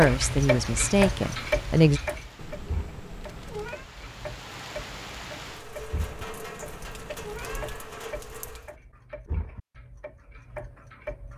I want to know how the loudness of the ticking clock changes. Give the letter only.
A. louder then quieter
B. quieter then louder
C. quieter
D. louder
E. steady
C.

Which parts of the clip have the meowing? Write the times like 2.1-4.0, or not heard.
2.4-3.9, 6.0-7.8.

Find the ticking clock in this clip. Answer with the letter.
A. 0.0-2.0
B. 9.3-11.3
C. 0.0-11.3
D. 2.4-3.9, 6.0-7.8
C.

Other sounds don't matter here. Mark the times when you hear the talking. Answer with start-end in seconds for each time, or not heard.
0.0-2.0.